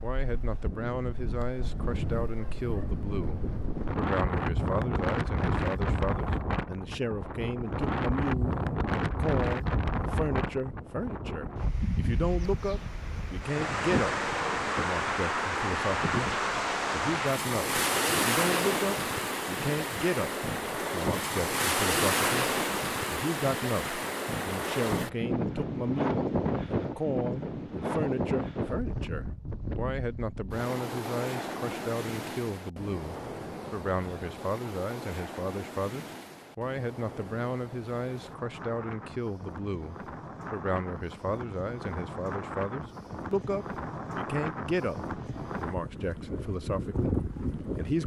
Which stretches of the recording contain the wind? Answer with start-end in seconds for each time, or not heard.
0.0-48.0.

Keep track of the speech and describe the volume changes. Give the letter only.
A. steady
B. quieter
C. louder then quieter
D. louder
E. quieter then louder
A.